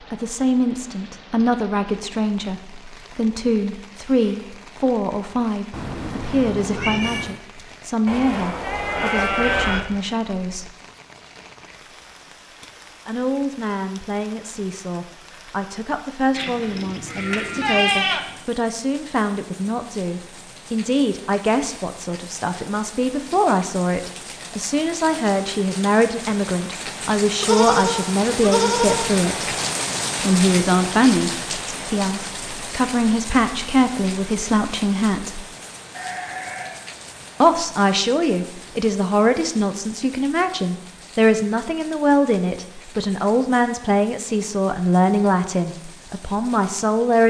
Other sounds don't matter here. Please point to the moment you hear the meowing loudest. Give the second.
7 s.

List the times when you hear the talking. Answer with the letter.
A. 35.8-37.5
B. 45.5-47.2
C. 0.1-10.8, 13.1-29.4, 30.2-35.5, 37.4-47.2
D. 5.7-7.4
C.